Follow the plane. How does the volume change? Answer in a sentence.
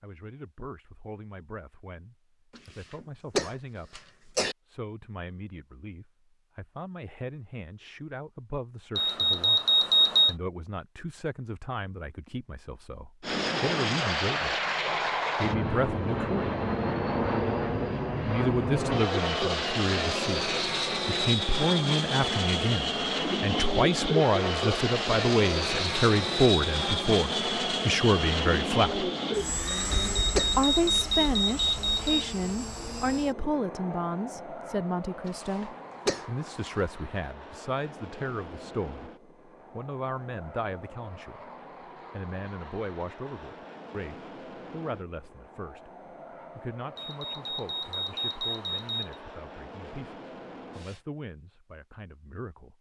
The loudness of the plane goes down.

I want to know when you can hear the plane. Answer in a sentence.
You can hear the plane from 13.2 to 51.0 s.